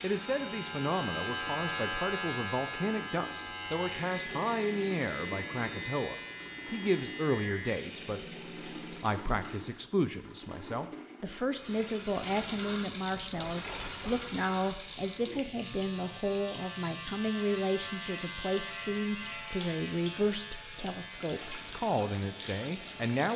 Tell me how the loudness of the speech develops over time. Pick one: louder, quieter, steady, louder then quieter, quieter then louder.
steady.